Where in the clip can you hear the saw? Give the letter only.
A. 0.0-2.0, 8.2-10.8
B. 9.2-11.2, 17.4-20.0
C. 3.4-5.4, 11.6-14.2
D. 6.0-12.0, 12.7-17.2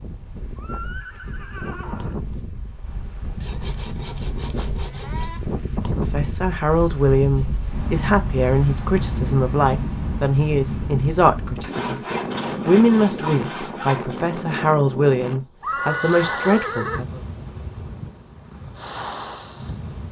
C.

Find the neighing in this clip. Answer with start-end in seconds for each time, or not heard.
0.6-2.2, 15.6-17.1.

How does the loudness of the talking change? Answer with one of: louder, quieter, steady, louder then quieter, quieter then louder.
steady.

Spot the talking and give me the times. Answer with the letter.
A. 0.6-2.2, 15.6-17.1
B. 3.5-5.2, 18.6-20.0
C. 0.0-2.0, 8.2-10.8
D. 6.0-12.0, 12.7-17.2
D.